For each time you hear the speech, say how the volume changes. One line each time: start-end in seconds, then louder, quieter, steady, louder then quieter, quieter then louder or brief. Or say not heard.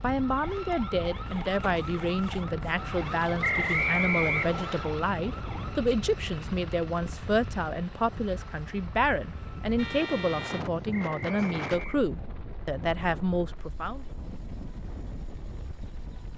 0.0-14.1 steady.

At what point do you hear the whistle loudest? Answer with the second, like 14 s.
4 s.